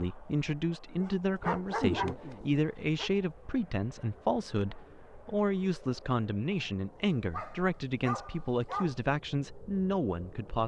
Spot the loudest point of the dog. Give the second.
2 s.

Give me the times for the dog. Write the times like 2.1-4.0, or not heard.
1.0-3.1, 7.3-8.9.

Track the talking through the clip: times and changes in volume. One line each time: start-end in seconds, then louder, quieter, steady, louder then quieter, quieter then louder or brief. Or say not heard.
0.0-10.6 steady.